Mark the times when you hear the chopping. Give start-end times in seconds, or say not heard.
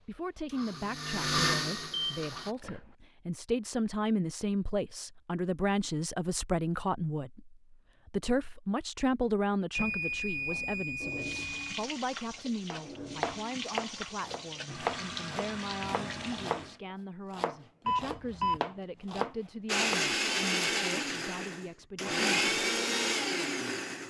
12.7-20.0.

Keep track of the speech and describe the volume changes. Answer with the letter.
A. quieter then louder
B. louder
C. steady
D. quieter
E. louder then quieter
D.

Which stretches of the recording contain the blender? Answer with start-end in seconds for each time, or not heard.
0.0-2.5, 19.6-24.0.